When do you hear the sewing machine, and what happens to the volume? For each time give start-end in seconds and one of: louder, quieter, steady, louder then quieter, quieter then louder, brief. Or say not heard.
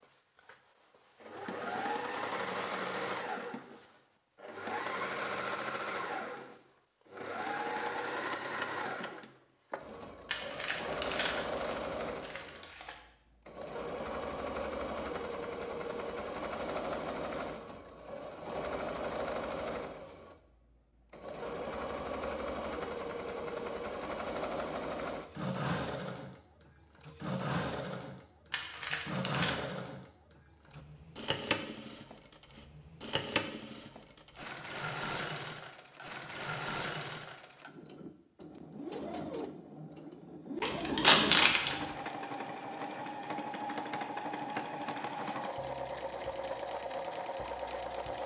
0.0-48.2 steady.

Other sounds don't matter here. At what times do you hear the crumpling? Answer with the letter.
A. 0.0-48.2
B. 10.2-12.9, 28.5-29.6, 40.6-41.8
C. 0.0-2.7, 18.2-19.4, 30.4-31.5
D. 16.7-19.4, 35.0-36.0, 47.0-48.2
B.